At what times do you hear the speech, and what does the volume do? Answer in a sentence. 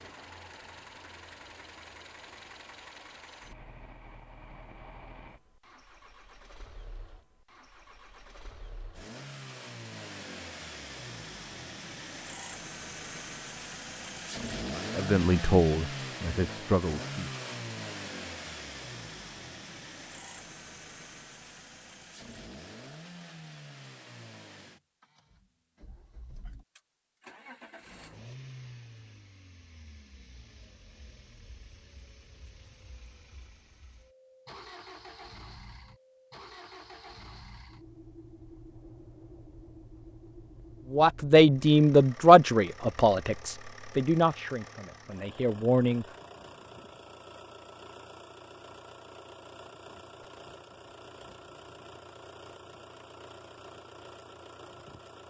The speech can be heard briefly from 14.8 to 17.3 s; and from 40.9 to 46.0 s, getting quieter.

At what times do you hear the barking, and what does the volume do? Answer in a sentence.
You can't hear the barking here.